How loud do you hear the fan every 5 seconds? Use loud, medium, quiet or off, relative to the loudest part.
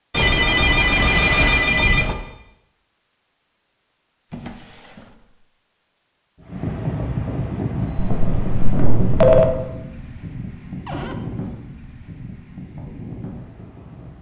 off, loud, medium.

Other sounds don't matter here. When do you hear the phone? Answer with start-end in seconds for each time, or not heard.
0.1-2.1, 8.0-9.5.